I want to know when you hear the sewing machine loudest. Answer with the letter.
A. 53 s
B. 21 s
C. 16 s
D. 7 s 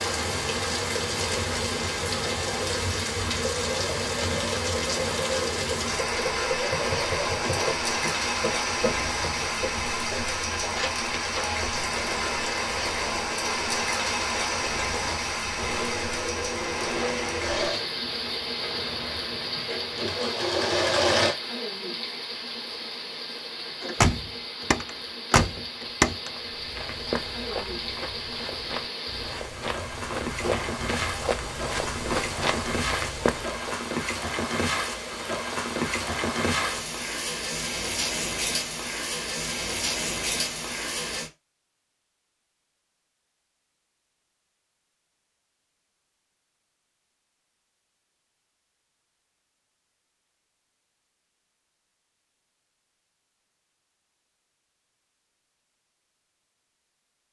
B.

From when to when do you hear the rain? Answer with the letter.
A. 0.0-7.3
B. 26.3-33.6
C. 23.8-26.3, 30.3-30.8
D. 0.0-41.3
D.